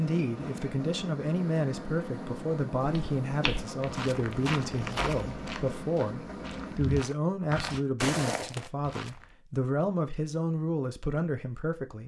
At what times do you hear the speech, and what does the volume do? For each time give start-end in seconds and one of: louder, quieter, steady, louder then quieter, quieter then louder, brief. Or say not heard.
0.0-12.0 steady.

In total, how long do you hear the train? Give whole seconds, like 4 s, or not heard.
7 s.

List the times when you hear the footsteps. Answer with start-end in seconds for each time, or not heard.
2.8-9.2.